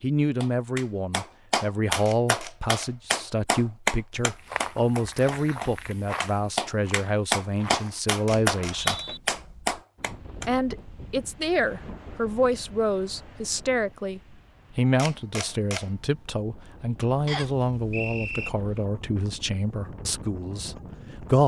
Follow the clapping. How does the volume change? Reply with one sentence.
The volume of the clapping goes down, then up.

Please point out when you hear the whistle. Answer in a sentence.
You can hear the whistle from 8.5 to 9.2 s and from 17.2 to 18.5 s.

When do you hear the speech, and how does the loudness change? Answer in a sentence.
You can hear the speech from 0.0 to 9.0 s, at a steady volume; and from 10.4 to 21.4 s, getting quieter.